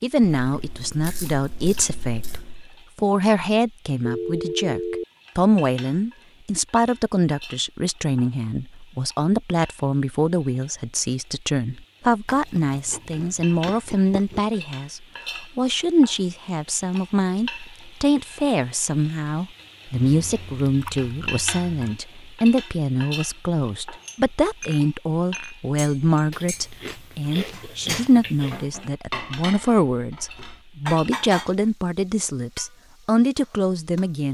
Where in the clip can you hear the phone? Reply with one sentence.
You can hear the phone from 4.0 to 5.0 s.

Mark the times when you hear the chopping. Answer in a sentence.
The chopping can't be heard in this clip.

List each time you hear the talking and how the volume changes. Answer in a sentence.
You can hear the talking from 0.0 to 34.2 s, at a steady volume.